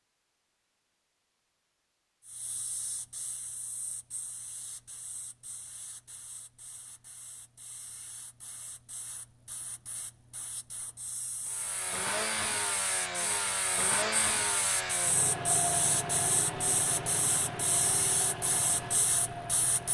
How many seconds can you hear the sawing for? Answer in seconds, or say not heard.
not heard.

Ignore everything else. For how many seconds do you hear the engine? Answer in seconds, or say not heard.
8 s.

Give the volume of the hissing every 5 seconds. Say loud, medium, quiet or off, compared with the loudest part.
quiet, quiet, medium, loud.